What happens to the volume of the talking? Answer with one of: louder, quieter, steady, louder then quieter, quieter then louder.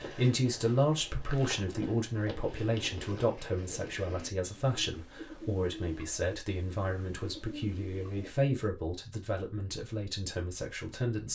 quieter.